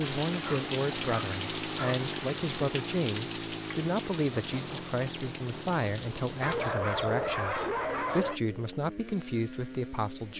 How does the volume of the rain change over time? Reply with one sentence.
The volume of the rain goes down.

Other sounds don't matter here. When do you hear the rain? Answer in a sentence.
You can hear the rain from 0.0 to 6.7 s.